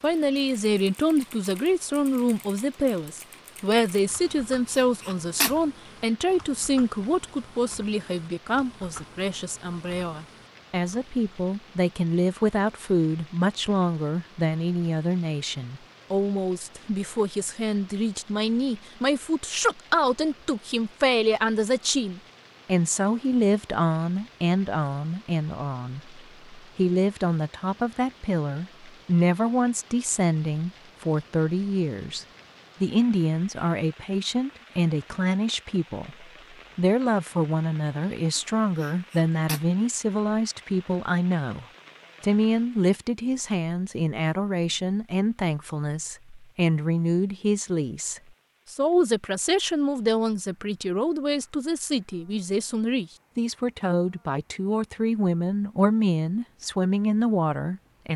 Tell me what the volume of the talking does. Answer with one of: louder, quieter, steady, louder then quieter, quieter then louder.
steady.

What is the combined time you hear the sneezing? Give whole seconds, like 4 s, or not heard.
2 s.